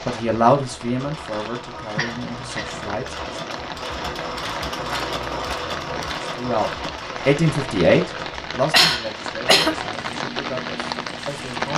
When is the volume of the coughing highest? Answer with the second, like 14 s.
9 s.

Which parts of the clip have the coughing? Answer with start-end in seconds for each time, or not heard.
1.9-2.9, 8.7-9.8.